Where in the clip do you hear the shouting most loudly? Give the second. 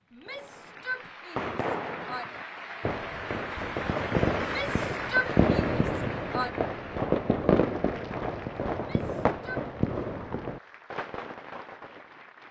5 s.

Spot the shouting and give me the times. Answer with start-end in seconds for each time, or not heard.
0.1-2.2, 4.3-6.5, 8.8-9.7.